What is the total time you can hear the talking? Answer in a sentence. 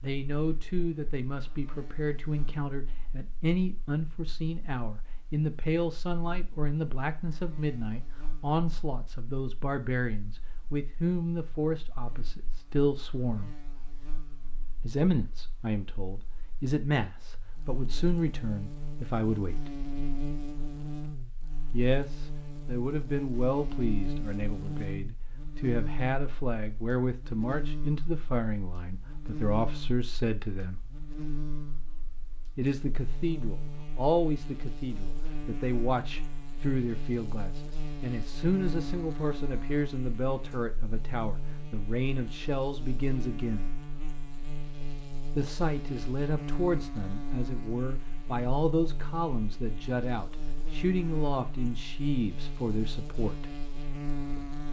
The talking can be heard for 47 seconds in total.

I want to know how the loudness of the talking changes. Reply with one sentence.
The volume of the talking stays about the same.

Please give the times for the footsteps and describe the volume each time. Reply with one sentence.
You can't hear the footsteps here.